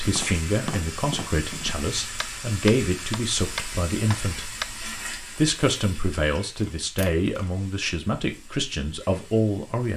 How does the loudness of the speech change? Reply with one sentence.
The volume of the speech stays about the same.